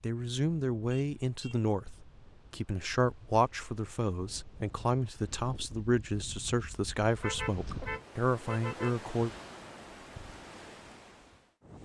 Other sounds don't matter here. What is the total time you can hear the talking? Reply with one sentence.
The talking can be heard for 9 seconds in total.